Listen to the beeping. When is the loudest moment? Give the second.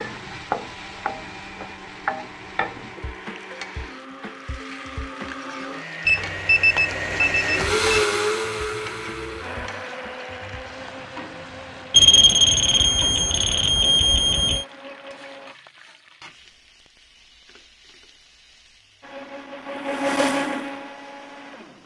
12 s.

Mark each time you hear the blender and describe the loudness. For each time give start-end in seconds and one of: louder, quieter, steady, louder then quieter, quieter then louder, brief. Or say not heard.
0.0-15.6 louder then quieter
19.0-21.8 brief.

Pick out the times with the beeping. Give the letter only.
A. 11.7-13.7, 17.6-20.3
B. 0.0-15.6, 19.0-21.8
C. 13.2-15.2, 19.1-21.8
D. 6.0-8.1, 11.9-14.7
D.